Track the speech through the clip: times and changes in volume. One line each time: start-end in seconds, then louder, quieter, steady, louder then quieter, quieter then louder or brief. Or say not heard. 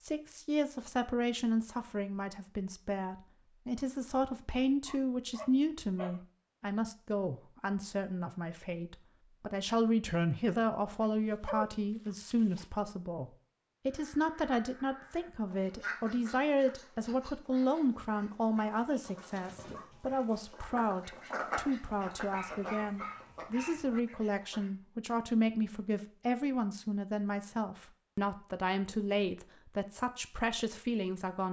0.0-31.4 steady.